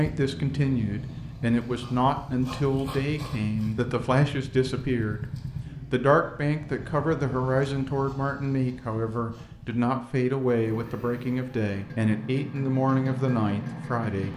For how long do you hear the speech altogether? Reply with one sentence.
The speech can be heard for 14 seconds in total.